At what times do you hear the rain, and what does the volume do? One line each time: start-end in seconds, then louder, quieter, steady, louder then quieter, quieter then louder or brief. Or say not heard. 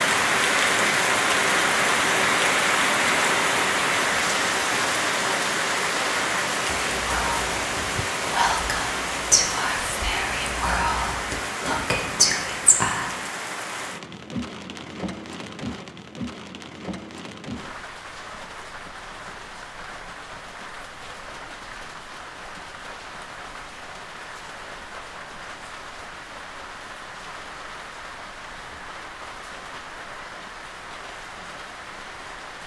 0.0-32.6 quieter.